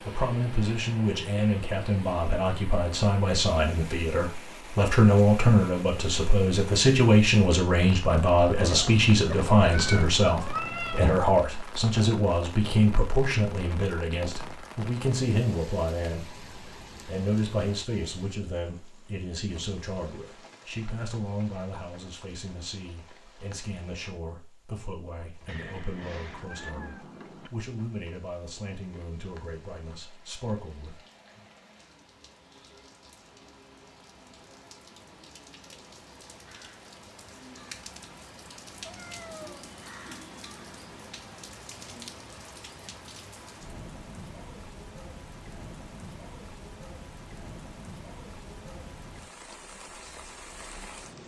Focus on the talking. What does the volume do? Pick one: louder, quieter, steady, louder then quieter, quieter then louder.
quieter.